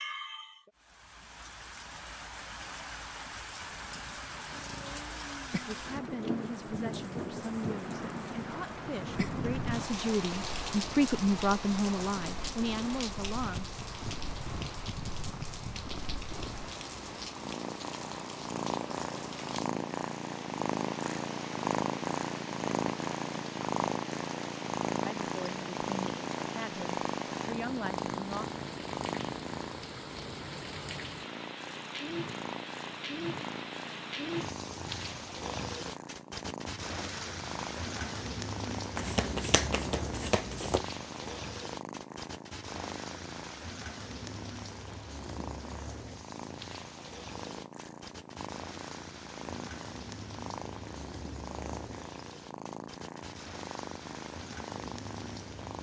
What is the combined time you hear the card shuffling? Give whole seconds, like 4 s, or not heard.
2 s.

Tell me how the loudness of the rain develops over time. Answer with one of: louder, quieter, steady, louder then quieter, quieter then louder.
quieter.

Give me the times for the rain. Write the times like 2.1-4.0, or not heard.
0.0-55.7.